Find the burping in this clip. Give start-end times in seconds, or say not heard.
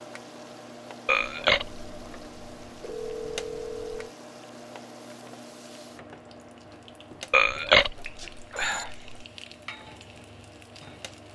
1.1-1.9, 7.3-9.2.